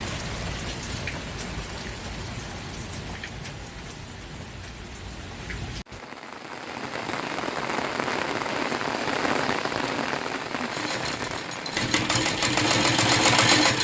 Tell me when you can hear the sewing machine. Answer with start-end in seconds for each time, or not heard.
10.7-13.7.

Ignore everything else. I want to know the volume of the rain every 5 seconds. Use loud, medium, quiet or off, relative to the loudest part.
medium, loud, loud.